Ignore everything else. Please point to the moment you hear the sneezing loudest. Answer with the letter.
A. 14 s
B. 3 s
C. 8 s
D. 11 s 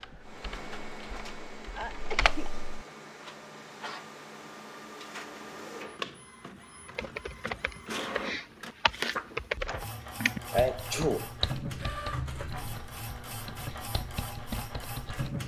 D.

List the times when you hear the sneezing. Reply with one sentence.
The sneezing can be heard from 1.8 to 2.5 s and from 10.5 to 11.3 s.